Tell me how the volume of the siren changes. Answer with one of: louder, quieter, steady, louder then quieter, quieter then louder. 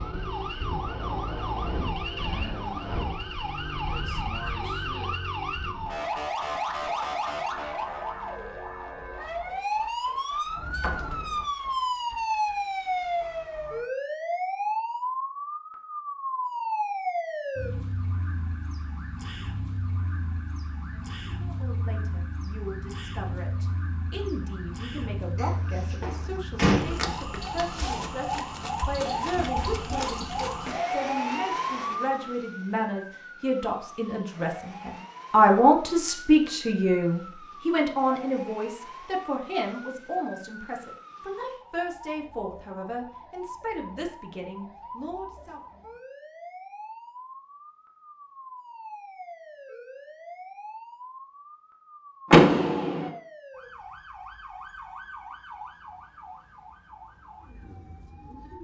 quieter.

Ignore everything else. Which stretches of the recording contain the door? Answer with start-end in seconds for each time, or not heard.
10.6-11.4, 25.4-26.9, 52.3-53.1.